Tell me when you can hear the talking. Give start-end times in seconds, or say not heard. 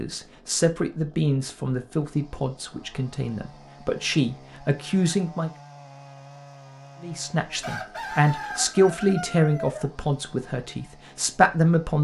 0.0-5.5, 7.0-11.9.